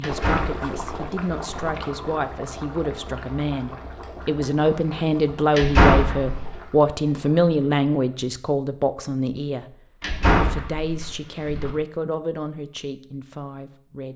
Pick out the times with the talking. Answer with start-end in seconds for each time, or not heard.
0.0-9.8, 10.3-14.1.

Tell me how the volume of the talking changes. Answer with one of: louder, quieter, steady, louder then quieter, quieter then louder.
louder then quieter.